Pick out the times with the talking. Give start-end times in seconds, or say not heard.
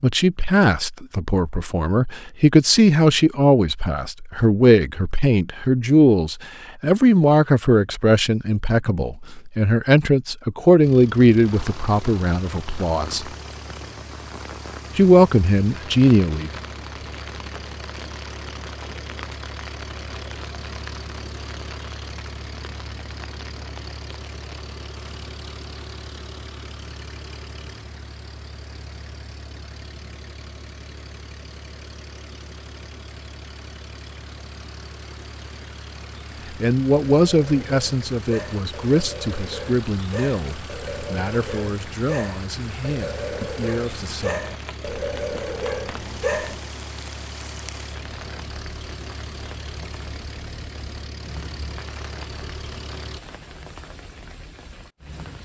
0.0-13.3, 14.9-16.5, 36.5-44.5.